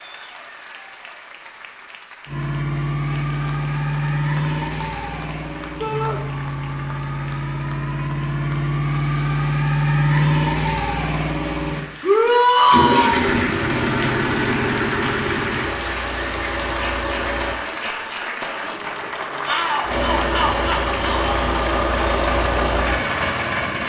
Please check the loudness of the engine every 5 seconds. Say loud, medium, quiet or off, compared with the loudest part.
loud, loud, loud, medium, loud.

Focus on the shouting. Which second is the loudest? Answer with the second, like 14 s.
13 s.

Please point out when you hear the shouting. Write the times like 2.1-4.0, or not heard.
5.8-6.2, 12.0-13.2, 19.4-21.4.